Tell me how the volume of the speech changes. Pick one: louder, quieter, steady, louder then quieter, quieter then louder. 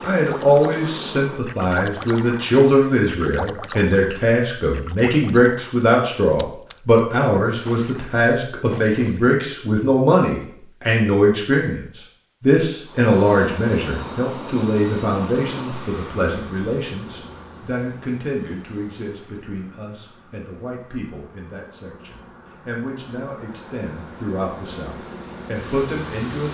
quieter.